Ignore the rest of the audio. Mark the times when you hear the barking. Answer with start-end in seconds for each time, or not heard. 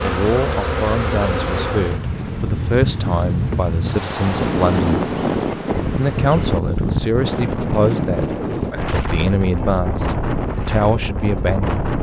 not heard.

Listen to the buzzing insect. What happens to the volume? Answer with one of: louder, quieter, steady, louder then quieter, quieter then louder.
quieter.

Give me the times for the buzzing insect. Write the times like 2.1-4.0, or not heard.
0.0-6.6.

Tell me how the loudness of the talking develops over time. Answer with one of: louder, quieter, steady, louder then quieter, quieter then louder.
steady.